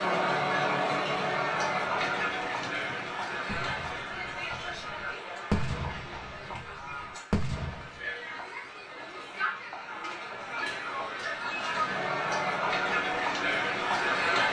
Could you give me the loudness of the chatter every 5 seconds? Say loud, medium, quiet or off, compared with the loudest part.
loud, medium, loud.